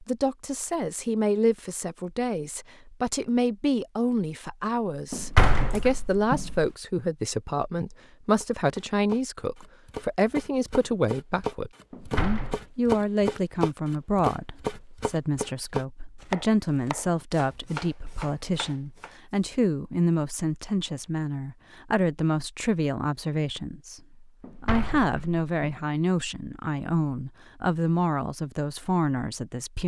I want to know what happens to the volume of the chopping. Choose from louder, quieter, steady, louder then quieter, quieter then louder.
louder then quieter.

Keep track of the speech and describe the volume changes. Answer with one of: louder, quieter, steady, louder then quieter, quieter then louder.
steady.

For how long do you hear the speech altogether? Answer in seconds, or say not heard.
30 s.